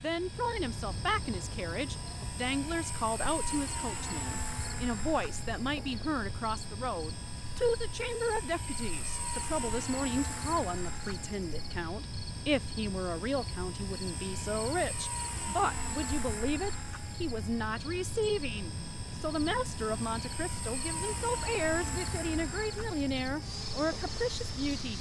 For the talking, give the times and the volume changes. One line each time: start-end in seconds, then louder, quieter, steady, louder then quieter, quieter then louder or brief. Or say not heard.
0.0-24.9 steady.